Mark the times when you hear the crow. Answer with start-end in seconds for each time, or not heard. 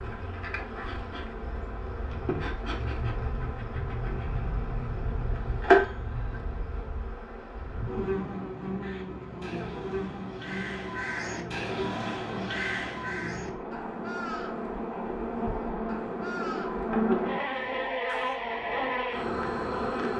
8.8-18.4.